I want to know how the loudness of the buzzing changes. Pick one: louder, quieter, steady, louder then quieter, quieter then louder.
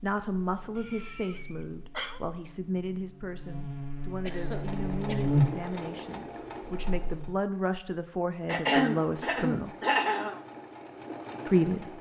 louder then quieter.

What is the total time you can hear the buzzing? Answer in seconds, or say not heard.
7 s.